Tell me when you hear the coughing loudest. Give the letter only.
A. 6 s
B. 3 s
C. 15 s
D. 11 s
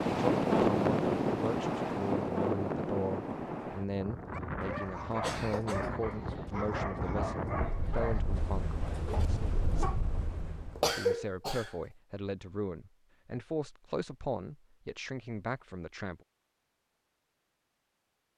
D.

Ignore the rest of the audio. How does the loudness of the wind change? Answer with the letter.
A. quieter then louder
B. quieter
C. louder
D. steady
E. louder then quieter
B.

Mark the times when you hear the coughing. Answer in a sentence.
You can hear the coughing from 4.7 to 6.0 s and from 10.8 to 11.7 s.